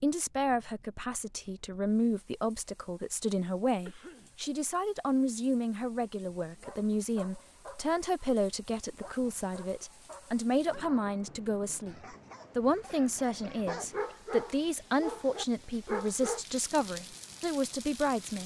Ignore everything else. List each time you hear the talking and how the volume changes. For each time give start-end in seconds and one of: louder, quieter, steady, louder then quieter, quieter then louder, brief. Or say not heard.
0.0-18.4 steady.